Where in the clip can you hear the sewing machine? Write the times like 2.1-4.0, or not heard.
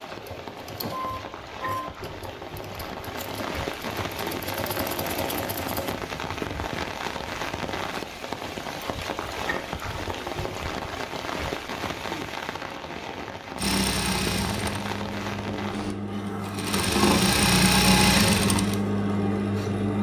0.0-6.0, 13.6-19.9.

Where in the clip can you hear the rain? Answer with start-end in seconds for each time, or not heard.
0.0-15.9.